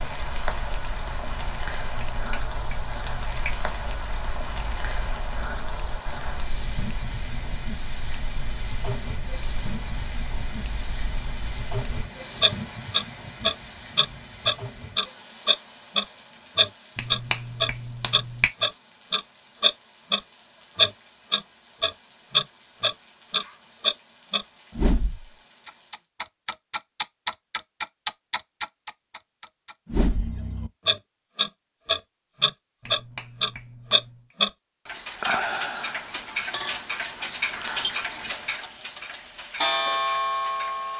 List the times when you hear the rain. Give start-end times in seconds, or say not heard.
0.0-26.1.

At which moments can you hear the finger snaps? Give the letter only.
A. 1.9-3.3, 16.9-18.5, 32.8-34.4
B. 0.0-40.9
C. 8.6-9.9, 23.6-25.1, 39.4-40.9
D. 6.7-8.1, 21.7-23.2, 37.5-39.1
A.